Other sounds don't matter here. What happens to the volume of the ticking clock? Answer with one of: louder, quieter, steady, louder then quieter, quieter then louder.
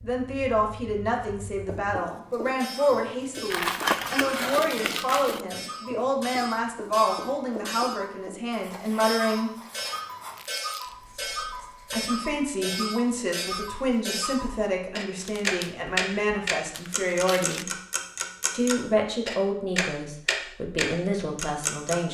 louder.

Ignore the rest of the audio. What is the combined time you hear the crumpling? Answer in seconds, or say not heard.
5 s.